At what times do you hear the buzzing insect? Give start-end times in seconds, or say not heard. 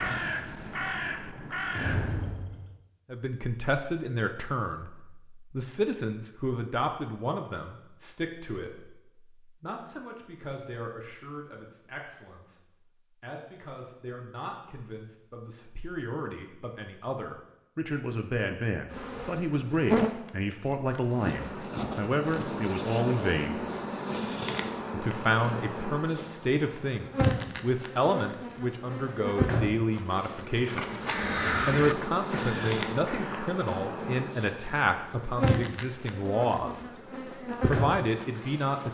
18.9-38.9.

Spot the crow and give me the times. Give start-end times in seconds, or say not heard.
0.0-2.8, 31.1-33.5.